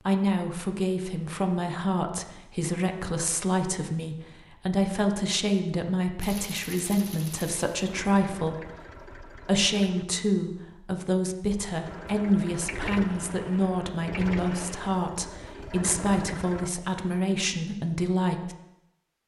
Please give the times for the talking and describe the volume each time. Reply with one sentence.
The talking can be heard from 0.1 to 18.6 s, at a steady volume.